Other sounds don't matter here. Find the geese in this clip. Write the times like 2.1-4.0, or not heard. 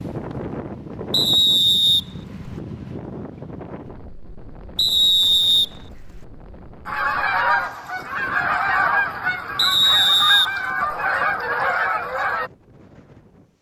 6.8-12.5.